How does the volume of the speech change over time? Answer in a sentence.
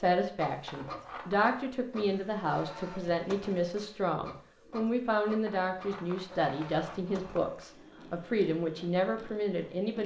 The loudness of the speech stays about the same.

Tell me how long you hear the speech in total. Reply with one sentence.
You can hear the speech for 10 seconds altogether.